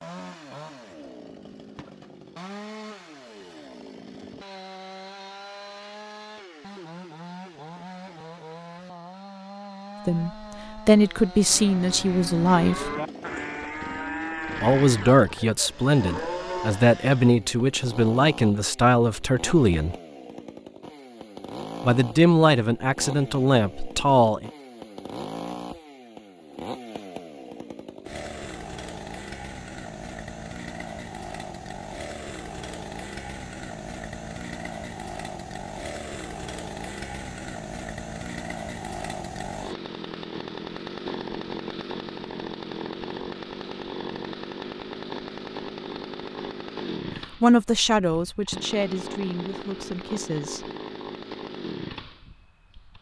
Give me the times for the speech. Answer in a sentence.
You can hear the speech from 10.1 to 12.9 s, from 14.6 to 19.9 s, from 21.8 to 24.5 s and from 47.4 to 50.7 s.